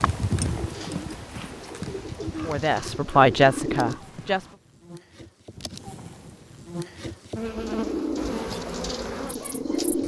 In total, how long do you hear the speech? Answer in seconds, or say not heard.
2 s.